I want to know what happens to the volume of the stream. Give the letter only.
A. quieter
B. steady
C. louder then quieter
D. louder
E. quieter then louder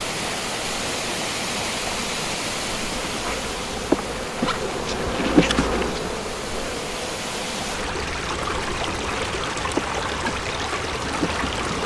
E.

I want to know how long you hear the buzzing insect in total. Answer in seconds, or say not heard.
12 s.